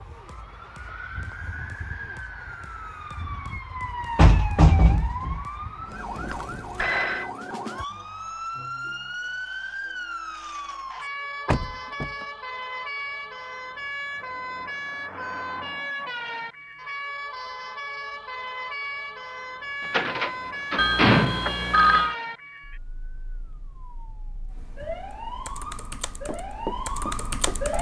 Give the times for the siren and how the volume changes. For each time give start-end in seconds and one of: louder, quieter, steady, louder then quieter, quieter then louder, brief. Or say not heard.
0.0-27.7 steady.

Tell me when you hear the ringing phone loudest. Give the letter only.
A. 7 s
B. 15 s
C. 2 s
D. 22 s
D.